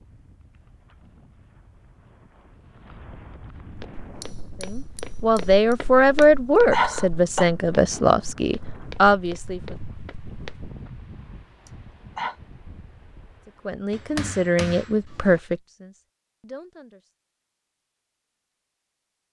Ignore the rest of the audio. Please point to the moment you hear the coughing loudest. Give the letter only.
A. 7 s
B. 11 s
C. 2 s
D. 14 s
A.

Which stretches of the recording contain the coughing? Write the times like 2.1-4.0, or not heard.
6.2-7.5, 11.7-12.3.